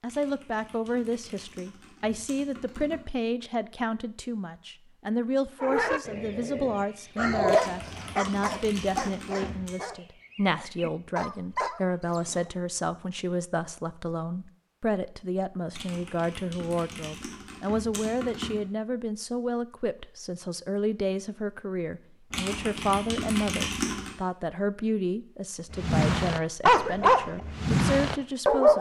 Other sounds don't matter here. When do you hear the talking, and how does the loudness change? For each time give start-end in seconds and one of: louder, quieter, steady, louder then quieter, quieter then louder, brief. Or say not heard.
0.0-28.7 steady.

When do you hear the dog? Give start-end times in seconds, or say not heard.
5.6-12.4, 25.7-28.7.